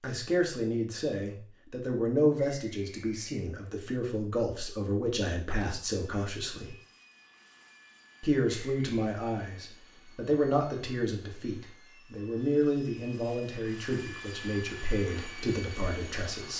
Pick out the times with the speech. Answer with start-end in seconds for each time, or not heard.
0.0-6.8, 8.2-16.5.